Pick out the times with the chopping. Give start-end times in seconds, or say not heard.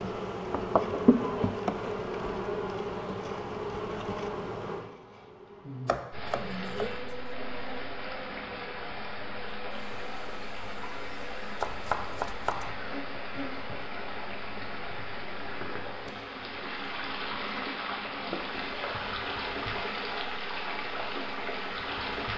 5.8-7.3, 11.6-12.8.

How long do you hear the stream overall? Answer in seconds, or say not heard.
16 s.